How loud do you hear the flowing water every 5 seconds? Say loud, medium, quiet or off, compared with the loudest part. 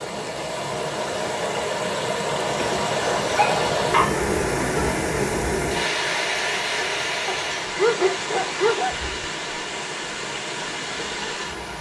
loud, loud, medium.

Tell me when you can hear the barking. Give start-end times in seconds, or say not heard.
2.5-4.2, 7.2-9.1.